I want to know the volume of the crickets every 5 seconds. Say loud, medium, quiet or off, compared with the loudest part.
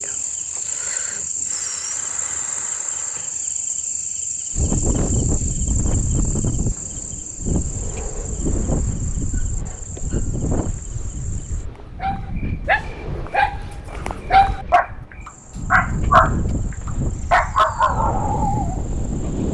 loud, medium, quiet, quiet.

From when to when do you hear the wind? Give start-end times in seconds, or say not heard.
4.5-19.4.